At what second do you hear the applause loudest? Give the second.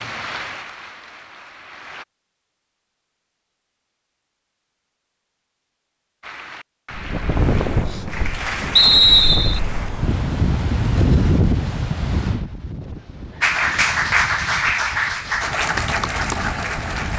14 s.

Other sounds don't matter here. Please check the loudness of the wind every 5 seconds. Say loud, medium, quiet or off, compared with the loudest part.
off, loud, loud, medium.